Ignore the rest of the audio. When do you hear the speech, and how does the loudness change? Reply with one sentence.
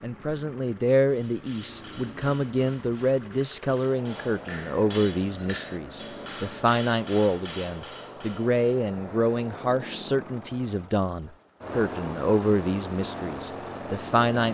The speech can be heard from 0.0 to 14.4 s, at a steady volume.